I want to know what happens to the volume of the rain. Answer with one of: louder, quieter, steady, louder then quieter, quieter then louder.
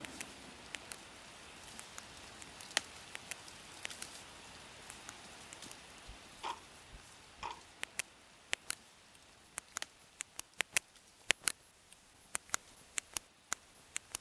quieter.